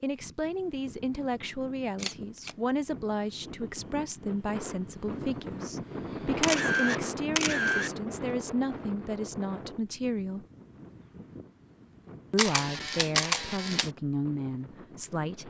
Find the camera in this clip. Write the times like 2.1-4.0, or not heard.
1.9-2.5, 6.4-7.9, 12.3-13.9.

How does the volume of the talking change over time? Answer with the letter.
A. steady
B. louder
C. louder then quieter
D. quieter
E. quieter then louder
A.